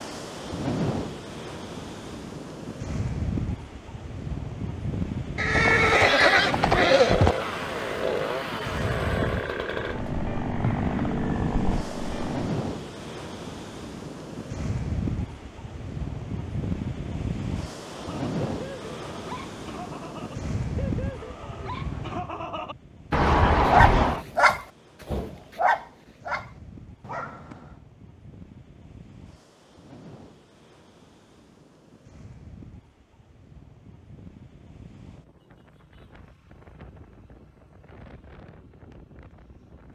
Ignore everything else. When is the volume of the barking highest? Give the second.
24 s.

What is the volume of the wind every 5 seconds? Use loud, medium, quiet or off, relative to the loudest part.
loud, loud, loud, loud, loud, quiet, quiet, quiet.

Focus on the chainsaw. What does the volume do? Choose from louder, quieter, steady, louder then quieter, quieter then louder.
steady.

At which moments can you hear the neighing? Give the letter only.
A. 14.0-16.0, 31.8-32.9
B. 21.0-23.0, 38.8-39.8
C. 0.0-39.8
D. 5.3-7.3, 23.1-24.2
D.